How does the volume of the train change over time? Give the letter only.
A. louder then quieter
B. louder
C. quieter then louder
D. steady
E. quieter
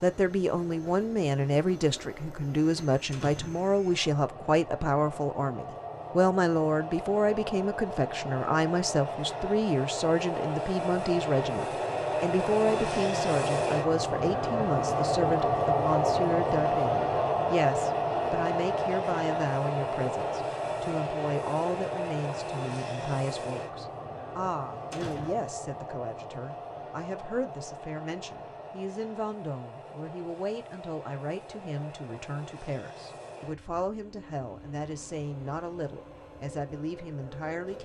A.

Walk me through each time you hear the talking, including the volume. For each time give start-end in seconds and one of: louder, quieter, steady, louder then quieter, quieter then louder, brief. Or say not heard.
0.0-37.8 quieter.